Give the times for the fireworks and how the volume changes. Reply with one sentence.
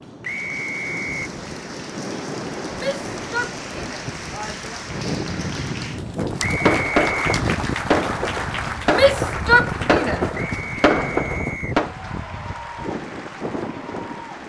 The fireworks can be heard from 6.5 to 11.9 s, at a steady volume.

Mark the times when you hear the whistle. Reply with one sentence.
You can hear the whistle from 0.2 to 1.3 s, from 6.4 to 7.4 s and from 10.3 to 11.8 s.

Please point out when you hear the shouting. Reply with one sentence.
The shouting can be heard from 2.8 to 4.8 s and from 8.9 to 10.2 s.